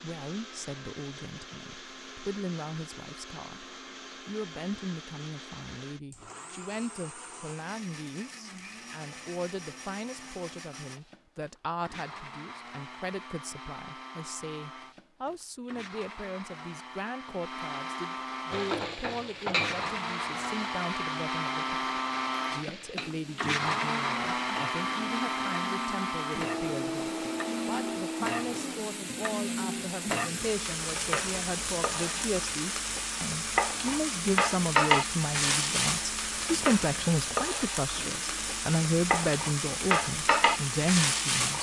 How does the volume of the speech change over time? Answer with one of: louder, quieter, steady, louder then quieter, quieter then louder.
louder.